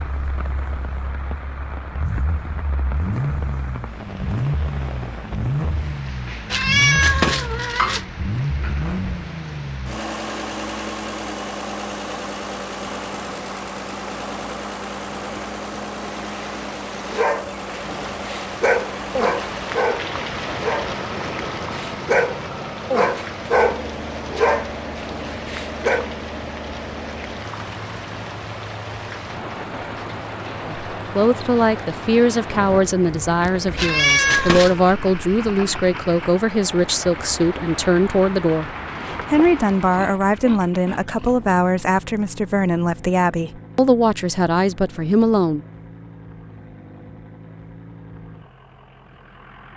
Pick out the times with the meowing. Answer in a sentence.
The meowing can be heard from 6.5 to 8.1 s and from 33.8 to 34.9 s.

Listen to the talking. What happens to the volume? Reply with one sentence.
The volume of the talking stays about the same.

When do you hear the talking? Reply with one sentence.
The talking can be heard from 30.6 to 38.7 s and from 39.3 to 45.6 s.